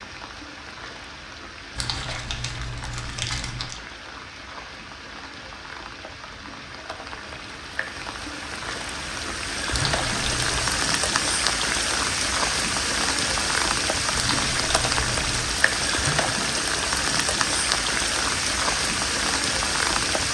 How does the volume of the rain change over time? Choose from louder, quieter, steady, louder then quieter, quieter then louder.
louder.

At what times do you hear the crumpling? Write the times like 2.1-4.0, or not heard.
1.8-3.8, 9.7-10.8, 14.2-15.6.